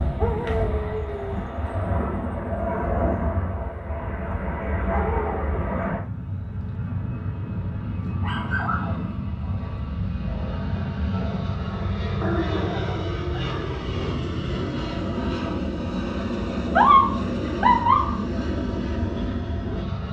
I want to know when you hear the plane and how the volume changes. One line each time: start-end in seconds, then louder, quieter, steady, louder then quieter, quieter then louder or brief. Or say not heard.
0.0-20.0 steady.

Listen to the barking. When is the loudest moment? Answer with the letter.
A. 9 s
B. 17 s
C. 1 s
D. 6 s
B.